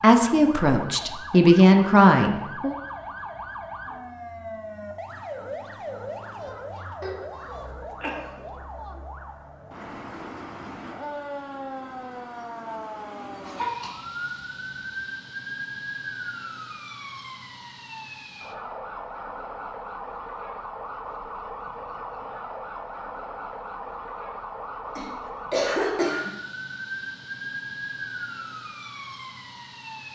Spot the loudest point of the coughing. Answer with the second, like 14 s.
26 s.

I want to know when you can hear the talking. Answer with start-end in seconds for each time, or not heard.
0.0-2.8.